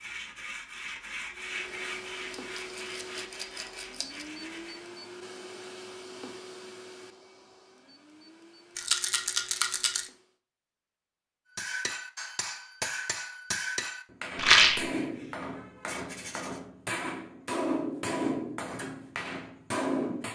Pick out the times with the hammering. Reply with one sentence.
You can hear the hammering from 11.6 to 20.2 s.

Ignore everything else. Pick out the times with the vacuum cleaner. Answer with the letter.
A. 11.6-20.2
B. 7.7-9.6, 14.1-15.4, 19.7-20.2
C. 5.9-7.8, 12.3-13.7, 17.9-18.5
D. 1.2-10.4
D.